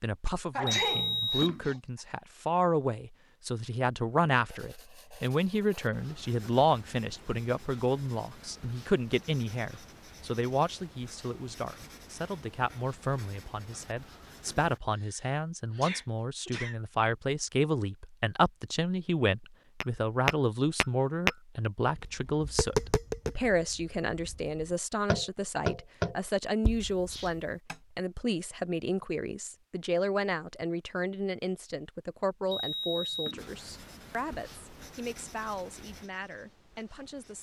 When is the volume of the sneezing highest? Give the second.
1 s.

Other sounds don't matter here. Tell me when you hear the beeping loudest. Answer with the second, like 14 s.
1 s.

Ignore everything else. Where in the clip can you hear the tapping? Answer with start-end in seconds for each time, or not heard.
19.8-27.8.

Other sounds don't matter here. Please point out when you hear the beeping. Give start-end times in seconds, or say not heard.
0.7-1.7, 32.5-33.6.